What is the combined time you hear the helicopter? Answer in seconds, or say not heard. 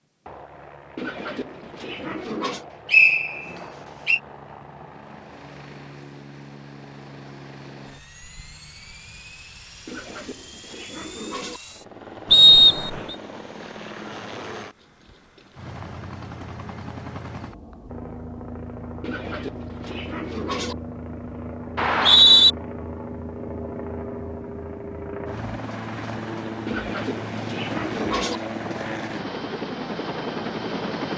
31 s.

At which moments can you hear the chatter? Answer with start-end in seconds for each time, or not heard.
not heard.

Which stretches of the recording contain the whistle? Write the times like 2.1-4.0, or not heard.
2.9-4.2, 12.3-13.2, 21.8-22.5.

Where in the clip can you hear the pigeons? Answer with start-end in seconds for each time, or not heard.
0.9-2.6, 9.8-11.6, 19.0-20.8, 26.6-28.4.